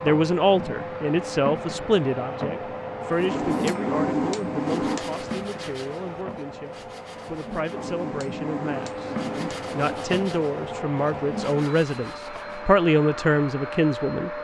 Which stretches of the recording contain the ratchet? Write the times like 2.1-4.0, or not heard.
not heard.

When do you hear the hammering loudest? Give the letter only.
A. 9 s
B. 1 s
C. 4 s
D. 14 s
C.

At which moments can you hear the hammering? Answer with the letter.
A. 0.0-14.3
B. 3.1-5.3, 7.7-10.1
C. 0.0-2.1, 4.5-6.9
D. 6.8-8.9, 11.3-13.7
B.